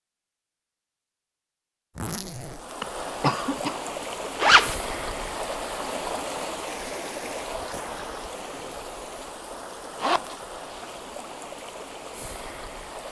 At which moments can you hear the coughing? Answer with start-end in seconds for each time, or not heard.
2.8-3.8.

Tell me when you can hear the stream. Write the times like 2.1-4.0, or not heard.
2.5-13.0.